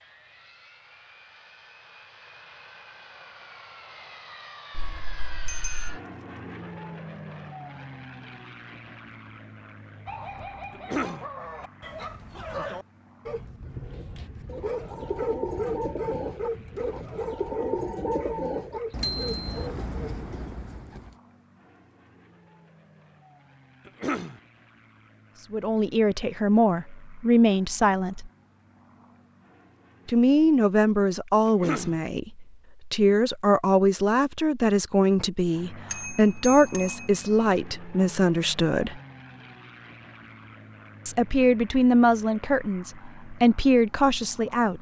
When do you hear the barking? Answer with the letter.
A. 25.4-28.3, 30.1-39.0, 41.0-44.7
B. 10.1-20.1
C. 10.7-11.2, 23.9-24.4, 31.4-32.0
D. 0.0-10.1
B.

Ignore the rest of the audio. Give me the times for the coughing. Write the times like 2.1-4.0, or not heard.
10.7-11.2, 23.9-24.4, 31.4-32.0.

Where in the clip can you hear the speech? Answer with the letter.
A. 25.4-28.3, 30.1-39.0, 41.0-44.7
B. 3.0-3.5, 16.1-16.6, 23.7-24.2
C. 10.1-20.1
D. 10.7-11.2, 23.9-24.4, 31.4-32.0
A.